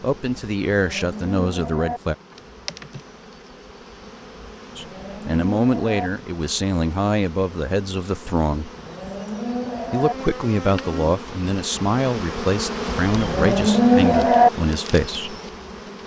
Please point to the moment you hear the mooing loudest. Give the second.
14 s.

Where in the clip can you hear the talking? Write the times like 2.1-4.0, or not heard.
0.0-2.1, 4.8-8.7, 9.9-15.3.